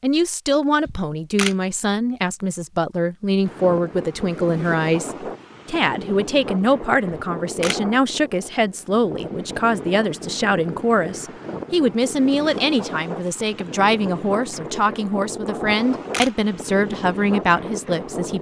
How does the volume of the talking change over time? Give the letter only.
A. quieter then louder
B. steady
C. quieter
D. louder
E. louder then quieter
B.